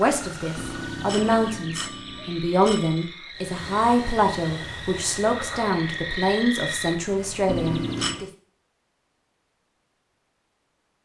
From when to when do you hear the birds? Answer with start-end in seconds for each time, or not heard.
not heard.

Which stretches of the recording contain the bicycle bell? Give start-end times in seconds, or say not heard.
0.6-3.1, 7.5-8.2.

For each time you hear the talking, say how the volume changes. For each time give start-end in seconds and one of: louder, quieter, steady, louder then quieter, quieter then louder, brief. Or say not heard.
0.0-8.2 steady.